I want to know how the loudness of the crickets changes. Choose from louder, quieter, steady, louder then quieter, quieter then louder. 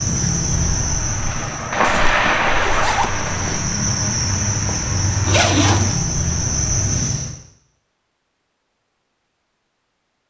quieter then louder.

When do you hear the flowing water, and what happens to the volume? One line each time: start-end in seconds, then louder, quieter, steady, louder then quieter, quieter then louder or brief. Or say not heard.
0.0-7.0 louder then quieter.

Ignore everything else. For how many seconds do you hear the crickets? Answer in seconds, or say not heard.
7 s.